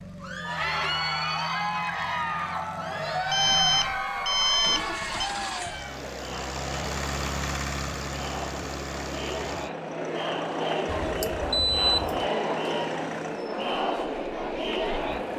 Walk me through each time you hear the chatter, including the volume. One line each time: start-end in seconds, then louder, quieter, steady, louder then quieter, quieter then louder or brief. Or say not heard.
0.1-15.3 quieter then louder.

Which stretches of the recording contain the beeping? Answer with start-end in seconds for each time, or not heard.
3.3-5.3, 11.0-12.3.